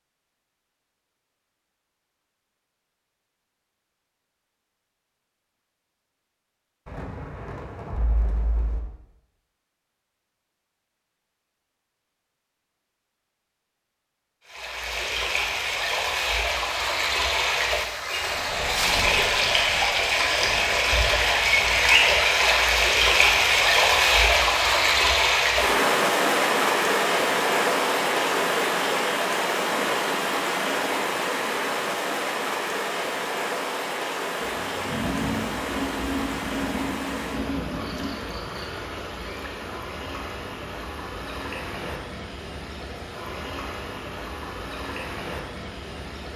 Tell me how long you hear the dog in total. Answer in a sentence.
The dog can't be heard in this clip.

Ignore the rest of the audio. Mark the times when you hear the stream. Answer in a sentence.
You can hear the stream from 14.4 to 46.3 s.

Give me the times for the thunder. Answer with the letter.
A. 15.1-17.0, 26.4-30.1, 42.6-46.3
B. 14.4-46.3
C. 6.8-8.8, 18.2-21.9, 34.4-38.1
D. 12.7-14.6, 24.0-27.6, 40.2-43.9
C.